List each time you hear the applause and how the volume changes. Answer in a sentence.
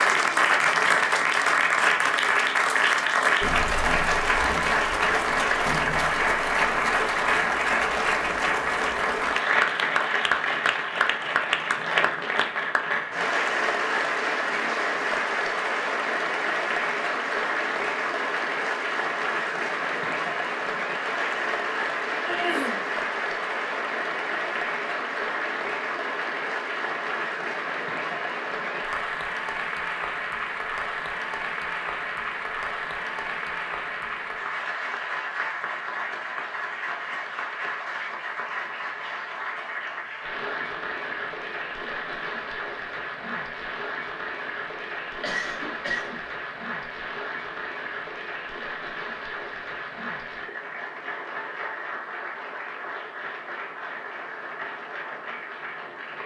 You can hear the applause from 0.0 to 56.2 s, getting quieter.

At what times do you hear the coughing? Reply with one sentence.
The coughing can be heard from 22.2 to 22.9 s and from 45.2 to 46.2 s.